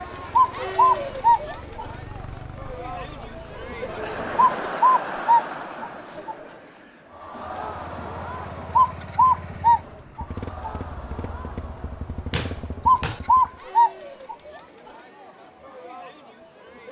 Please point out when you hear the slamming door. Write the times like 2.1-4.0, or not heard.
12.3-13.2.